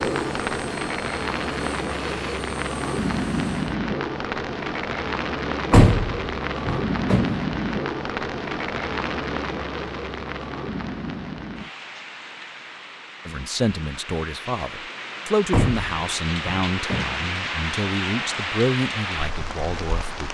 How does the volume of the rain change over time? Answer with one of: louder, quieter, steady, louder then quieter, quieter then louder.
quieter then louder.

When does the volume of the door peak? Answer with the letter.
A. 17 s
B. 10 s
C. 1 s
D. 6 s
D.